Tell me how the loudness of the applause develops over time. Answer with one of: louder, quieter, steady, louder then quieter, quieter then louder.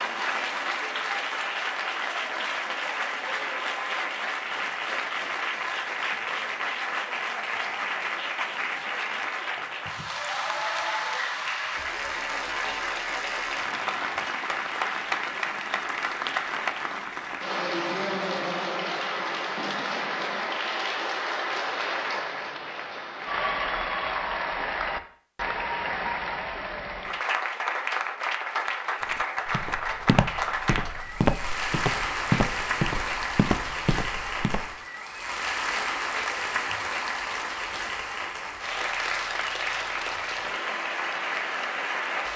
steady.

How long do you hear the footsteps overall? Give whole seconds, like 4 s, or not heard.
6 s.